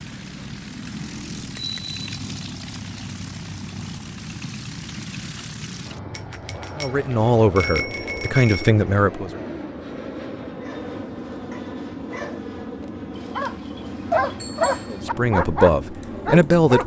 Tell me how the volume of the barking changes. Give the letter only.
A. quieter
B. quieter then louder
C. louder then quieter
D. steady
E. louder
E.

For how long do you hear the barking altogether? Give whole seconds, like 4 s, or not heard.
6 s.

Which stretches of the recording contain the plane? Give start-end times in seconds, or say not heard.
0.0-16.8.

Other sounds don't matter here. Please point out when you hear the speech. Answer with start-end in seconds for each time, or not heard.
6.8-9.4, 14.9-16.8.